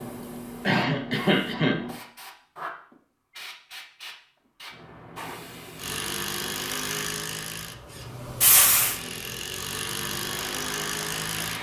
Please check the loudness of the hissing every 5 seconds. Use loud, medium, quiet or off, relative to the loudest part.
medium, loud, medium.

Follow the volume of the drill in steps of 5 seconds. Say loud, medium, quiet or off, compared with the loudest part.
off, loud, loud.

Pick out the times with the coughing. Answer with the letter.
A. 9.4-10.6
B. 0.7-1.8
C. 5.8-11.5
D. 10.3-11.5
B.